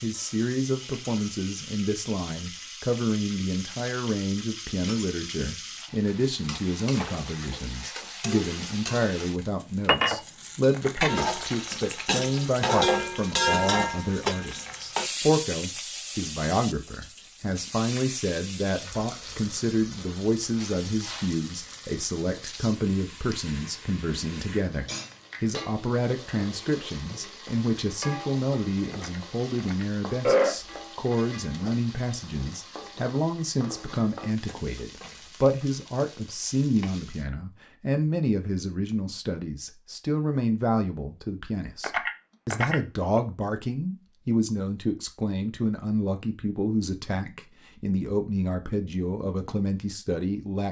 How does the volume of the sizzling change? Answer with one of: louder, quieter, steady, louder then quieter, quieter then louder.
louder then quieter.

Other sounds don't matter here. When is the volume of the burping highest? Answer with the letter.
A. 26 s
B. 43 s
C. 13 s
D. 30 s
D.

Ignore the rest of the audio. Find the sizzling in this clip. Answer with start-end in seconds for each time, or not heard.
0.0-37.3.